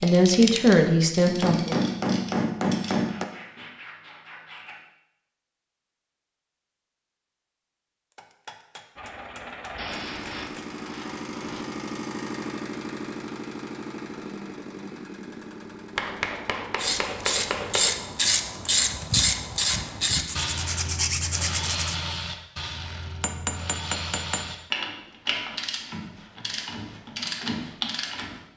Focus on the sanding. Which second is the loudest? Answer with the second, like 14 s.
21 s.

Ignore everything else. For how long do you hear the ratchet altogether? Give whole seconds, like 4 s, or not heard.
15 s.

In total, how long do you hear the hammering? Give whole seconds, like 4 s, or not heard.
8 s.